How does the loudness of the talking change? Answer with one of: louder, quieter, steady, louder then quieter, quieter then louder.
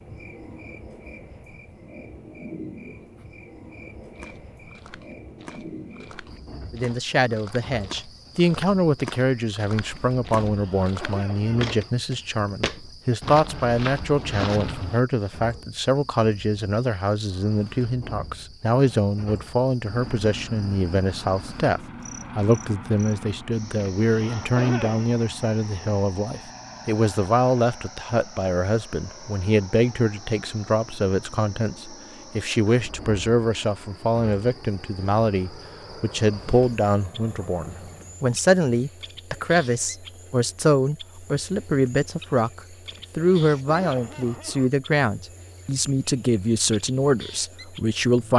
steady.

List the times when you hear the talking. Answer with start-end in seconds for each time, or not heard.
6.7-48.3.